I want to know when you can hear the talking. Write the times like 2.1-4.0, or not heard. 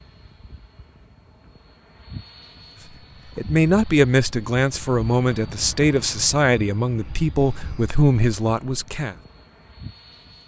3.4-9.2.